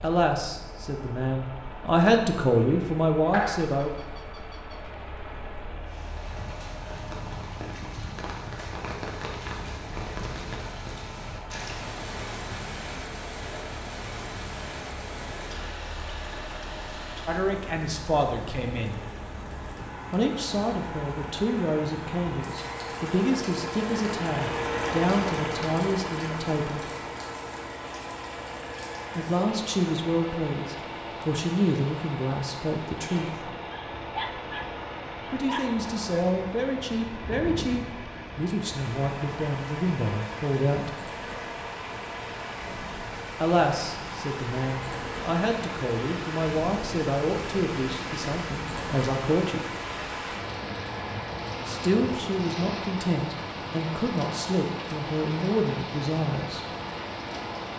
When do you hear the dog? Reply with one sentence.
You can hear the dog from 3.3 to 5.0 s and from 33.7 to 35.6 s.